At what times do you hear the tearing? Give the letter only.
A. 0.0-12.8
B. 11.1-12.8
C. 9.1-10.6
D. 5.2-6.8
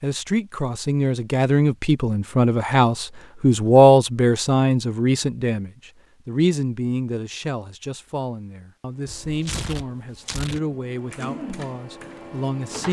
C.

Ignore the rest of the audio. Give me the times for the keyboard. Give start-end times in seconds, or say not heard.
11.1-12.8.